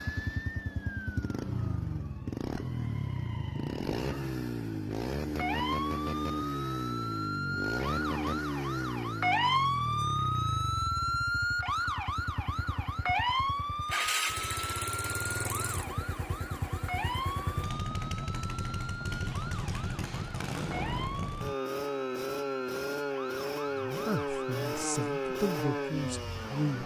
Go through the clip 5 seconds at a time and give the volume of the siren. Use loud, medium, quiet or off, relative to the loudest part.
medium, loud, loud, medium, medium, quiet.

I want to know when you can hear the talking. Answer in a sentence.
The talking can be heard from 23.8 to 26.8 s.